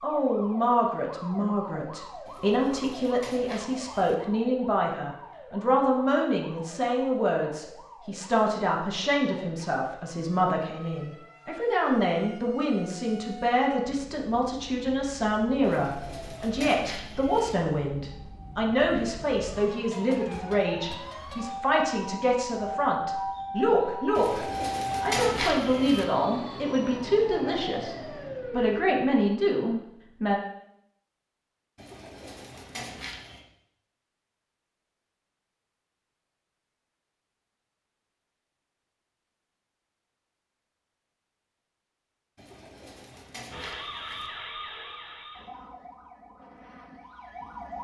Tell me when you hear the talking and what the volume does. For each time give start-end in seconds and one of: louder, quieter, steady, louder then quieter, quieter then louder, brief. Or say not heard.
0.0-30.4 steady.